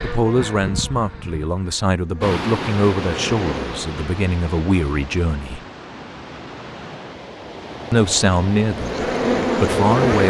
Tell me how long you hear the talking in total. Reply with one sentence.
You can hear the talking for 8 seconds altogether.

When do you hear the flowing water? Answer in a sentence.
You can hear the flowing water from 2.2 to 10.2 s.